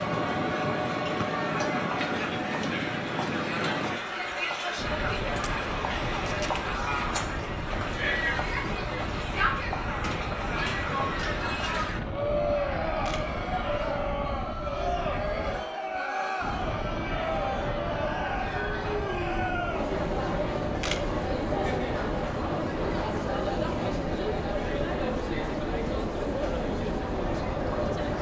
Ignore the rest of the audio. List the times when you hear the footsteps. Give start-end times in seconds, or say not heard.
not heard.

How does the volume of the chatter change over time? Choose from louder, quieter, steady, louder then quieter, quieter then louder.
steady.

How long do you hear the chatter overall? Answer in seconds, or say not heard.
28 s.